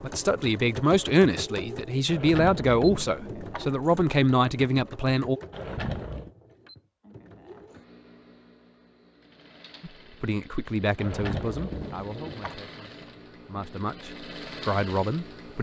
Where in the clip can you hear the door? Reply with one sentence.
The door can be heard from 2.0 to 3.7 s, from 5.5 to 6.3 s and from 10.9 to 12.6 s.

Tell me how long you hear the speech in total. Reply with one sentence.
The speech can be heard for 11 seconds in total.